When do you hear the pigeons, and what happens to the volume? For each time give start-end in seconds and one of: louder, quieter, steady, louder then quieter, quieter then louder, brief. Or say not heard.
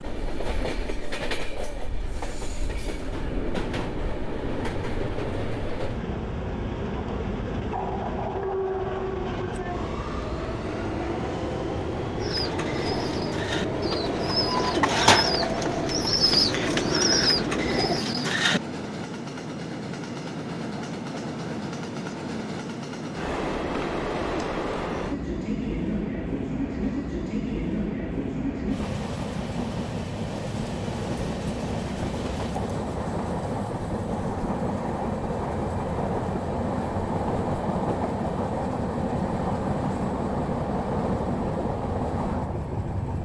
12.2-18.6 louder.